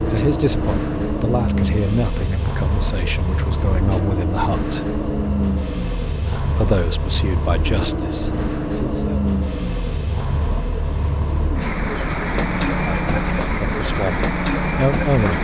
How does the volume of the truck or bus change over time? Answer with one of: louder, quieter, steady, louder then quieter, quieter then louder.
steady.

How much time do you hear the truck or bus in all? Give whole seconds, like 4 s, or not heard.
15 s.